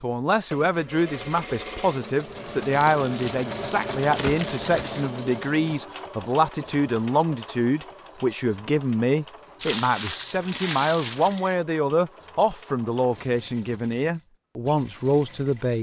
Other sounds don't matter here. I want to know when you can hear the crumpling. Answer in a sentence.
The crumpling can be heard from 2.3 to 5.0 s and from 9.6 to 11.5 s.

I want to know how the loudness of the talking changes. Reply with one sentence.
The volume of the talking stays about the same.